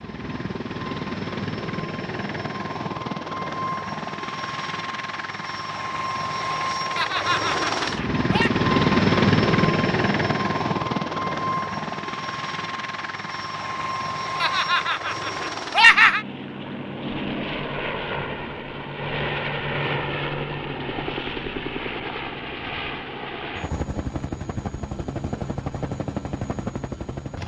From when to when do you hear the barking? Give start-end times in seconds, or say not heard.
not heard.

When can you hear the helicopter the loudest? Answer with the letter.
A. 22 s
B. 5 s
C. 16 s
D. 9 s
D.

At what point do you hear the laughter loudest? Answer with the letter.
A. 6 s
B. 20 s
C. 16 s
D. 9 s
C.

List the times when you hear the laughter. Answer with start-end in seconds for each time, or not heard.
7.0-8.5, 14.4-16.2.